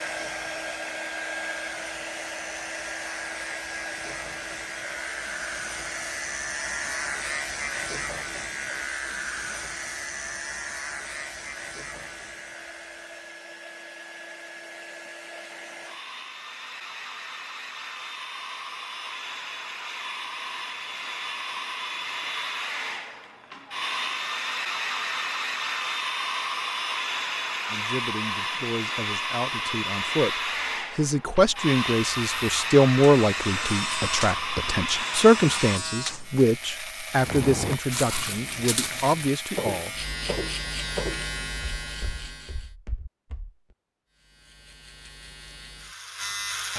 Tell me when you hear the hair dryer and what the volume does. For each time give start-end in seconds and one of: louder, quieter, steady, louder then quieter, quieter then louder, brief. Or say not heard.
0.0-35.8 quieter then louder.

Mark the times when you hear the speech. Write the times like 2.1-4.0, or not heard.
27.7-40.0.